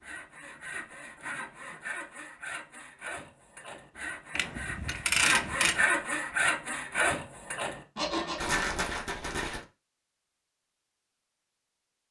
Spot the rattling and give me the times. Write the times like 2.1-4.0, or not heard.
8.3-9.7.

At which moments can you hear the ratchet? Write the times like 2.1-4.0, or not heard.
4.3-5.8.